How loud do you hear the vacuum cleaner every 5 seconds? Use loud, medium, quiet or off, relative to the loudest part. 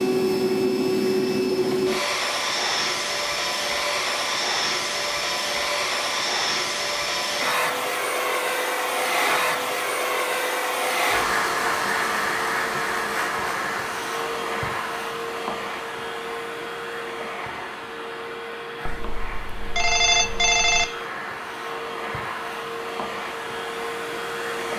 loud, loud, loud, medium, medium.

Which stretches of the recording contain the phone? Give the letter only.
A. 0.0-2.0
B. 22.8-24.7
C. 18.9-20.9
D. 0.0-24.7
C.